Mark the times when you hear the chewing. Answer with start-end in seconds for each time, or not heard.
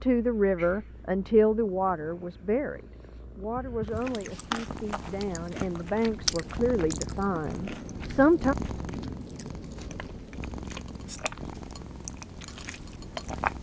3.9-13.5.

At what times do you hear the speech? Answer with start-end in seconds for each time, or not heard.
0.0-8.6.